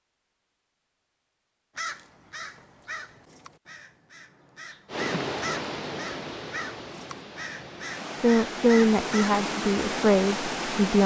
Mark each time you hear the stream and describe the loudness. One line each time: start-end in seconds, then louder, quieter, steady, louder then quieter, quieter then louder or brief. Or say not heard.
4.8-11.0 quieter then louder.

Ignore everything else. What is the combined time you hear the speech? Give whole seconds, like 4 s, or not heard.
3 s.